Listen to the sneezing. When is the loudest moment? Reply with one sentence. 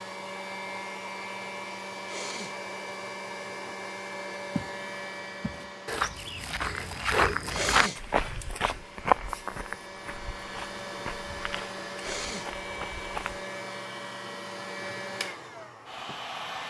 The volume of the sneezing peaks at 8 seconds.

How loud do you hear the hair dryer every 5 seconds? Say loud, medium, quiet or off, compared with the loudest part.
loud, medium, loud, loud.